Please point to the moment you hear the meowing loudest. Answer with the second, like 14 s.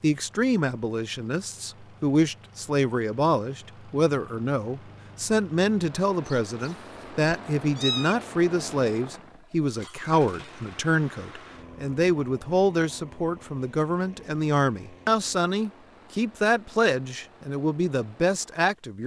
8 s.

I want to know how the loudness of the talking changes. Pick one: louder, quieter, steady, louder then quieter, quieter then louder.
steady.